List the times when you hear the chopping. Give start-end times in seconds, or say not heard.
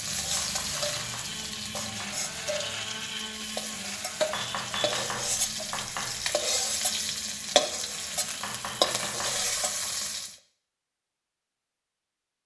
0.3-2.2, 4.3-6.2, 8.4-9.9.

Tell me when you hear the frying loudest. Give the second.
7 s.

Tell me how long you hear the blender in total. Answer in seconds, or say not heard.
9 s.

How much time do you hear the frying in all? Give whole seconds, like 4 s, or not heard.
10 s.